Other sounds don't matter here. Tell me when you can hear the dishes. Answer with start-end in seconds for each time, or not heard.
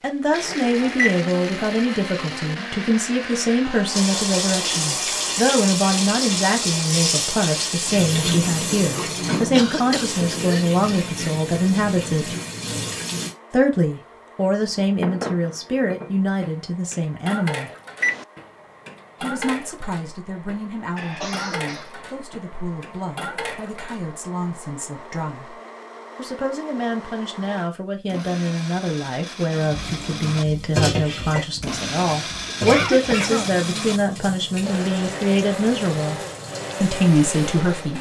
14.6-24.1.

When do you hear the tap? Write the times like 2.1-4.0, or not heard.
3.9-13.3, 29.6-37.6.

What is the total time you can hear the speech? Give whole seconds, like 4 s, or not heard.
34 s.